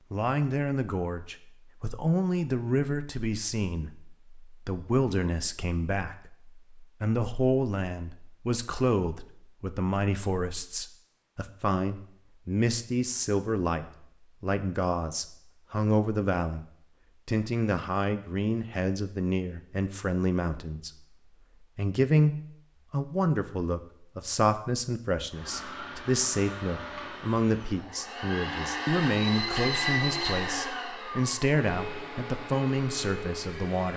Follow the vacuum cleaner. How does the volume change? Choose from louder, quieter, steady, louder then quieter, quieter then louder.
louder then quieter.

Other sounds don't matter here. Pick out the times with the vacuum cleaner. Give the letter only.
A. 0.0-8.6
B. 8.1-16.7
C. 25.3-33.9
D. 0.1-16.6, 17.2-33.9
C.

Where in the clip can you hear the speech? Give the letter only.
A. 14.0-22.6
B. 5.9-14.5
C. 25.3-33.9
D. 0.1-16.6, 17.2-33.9
D.